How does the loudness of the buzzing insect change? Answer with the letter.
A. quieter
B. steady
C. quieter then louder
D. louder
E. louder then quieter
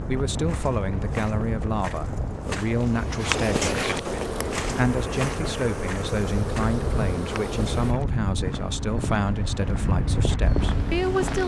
B.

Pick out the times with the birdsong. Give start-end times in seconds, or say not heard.
not heard.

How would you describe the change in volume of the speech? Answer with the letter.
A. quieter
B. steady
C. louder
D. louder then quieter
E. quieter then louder
B.